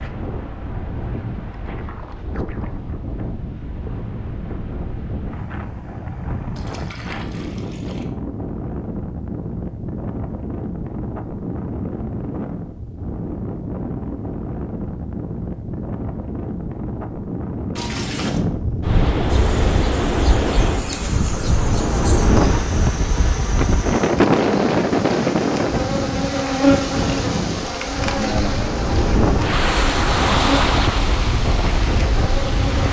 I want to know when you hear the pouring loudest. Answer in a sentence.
The loudest moment of the pouring is at 18 seconds.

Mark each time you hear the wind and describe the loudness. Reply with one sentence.
You can hear the wind from 0.0 to 32.8 s, getting louder.